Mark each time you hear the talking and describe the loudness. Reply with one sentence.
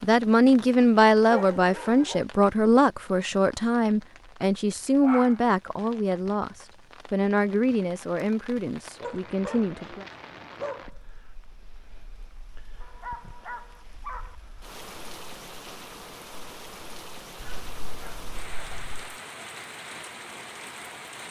You can hear the talking from 0.0 to 10.1 s, getting quieter.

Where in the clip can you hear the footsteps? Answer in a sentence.
The footsteps can't be heard in this clip.